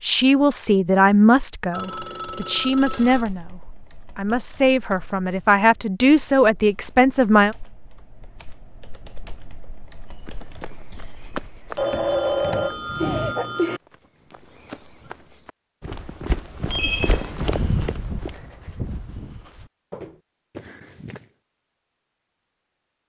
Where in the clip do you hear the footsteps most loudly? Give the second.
18 s.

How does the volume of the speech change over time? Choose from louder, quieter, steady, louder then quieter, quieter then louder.
quieter then louder.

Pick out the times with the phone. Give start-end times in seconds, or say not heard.
1.7-3.2, 11.8-13.8, 16.7-17.2.